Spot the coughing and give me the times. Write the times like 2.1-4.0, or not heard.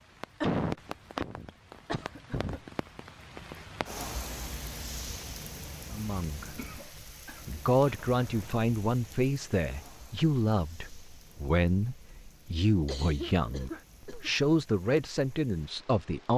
0.4-2.6, 6.5-8.5, 12.8-14.3.